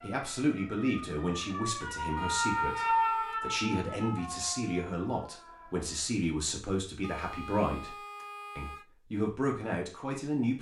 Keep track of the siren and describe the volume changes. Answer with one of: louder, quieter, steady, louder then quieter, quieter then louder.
louder then quieter.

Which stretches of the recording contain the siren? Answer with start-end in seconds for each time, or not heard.
0.0-6.0.